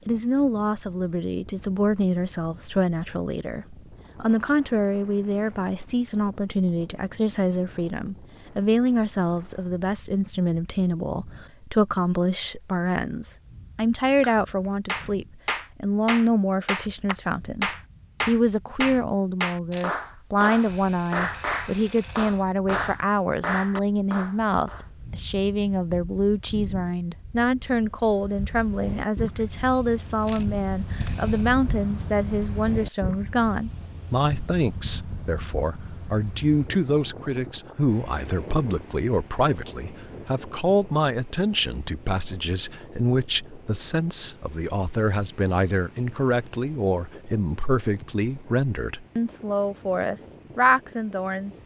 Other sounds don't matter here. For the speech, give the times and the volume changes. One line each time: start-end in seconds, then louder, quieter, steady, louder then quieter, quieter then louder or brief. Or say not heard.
0.1-51.6 steady.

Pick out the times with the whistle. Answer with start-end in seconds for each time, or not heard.
not heard.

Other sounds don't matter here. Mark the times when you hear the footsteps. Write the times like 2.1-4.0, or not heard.
not heard.